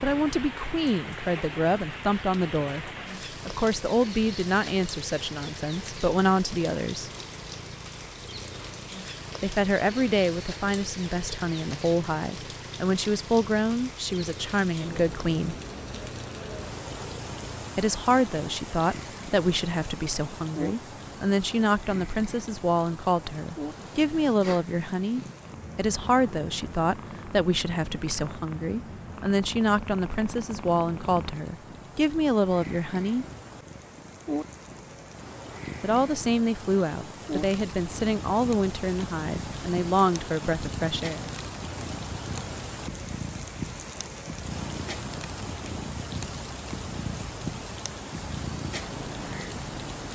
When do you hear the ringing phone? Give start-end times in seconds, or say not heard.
not heard.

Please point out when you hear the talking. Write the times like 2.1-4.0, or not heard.
0.0-7.1, 9.4-15.6, 17.8-33.2, 35.8-41.3.